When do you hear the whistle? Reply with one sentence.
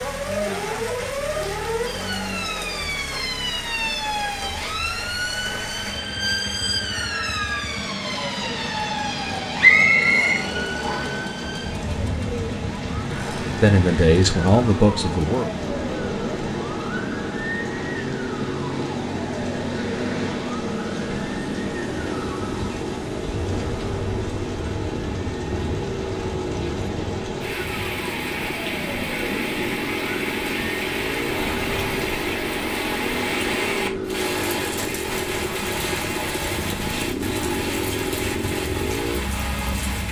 You can hear the whistle from 9.6 to 11.2 s.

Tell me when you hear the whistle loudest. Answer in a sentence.
The volume of the whistle peaks at 10 seconds.